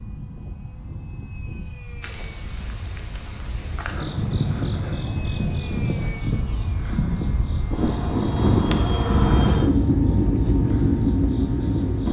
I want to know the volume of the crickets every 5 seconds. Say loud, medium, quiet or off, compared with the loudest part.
loud, loud, medium.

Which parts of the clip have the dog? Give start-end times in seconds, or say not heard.
not heard.